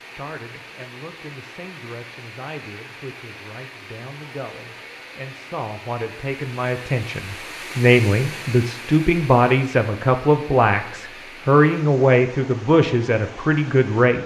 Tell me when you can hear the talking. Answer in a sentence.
The talking can be heard from 0.1 to 14.2 s.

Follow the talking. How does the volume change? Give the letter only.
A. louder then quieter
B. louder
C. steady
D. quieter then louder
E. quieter
B.